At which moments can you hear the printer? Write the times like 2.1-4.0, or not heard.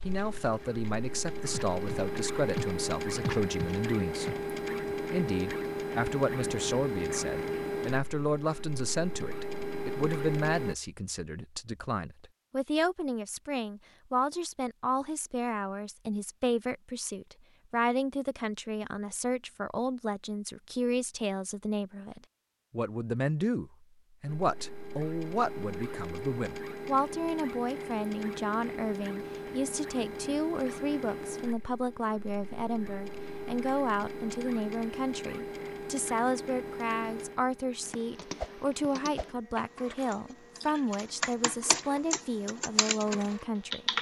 0.0-10.8, 24.2-43.9.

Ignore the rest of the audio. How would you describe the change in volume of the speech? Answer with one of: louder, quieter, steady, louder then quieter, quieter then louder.
steady.